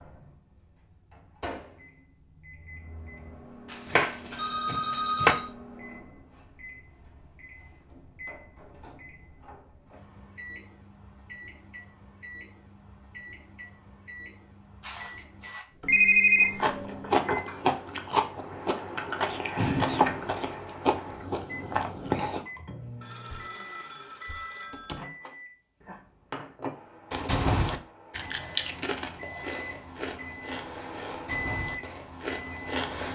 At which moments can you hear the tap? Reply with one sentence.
The tap can't be heard in this clip.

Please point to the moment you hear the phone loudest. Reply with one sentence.
The loudest moment of the phone is at 16 seconds.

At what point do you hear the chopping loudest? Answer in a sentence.
The volume of the chopping peaks at 5 seconds.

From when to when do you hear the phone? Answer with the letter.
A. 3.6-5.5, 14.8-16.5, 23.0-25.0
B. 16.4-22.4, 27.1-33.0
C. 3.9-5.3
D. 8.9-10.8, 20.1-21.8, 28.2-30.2
A.